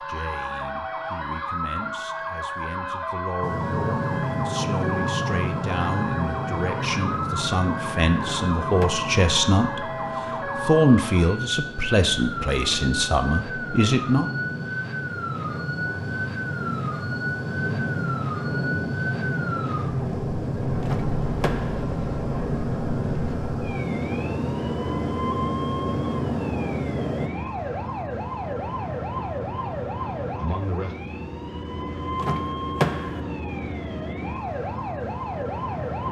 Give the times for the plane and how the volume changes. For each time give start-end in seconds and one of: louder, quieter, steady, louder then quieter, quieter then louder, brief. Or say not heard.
3.4-27.3 quieter then louder.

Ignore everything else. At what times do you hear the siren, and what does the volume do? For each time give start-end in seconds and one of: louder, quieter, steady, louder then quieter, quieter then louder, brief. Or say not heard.
0.0-36.0 steady.